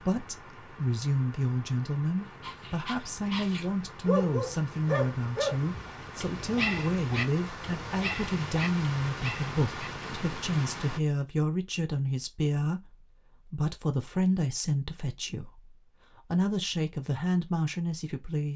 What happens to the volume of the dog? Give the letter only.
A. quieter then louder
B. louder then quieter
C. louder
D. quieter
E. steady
D.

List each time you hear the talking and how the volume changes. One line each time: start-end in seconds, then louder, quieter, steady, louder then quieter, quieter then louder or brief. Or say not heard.
0.0-18.5 steady.